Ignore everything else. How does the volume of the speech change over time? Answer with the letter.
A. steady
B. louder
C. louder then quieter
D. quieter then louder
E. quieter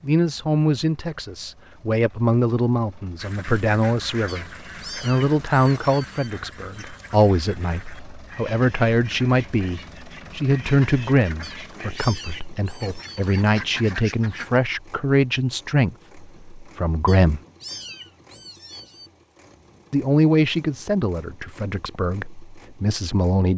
A.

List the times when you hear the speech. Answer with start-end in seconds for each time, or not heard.
0.0-17.4, 19.9-23.5.